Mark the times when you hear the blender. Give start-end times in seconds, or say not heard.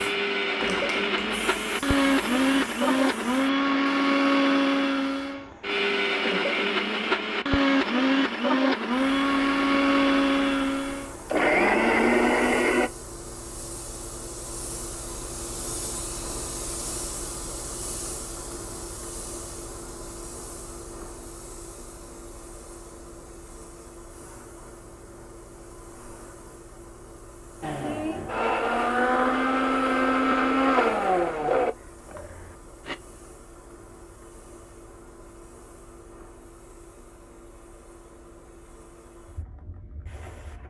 0.0-12.9, 27.6-33.0.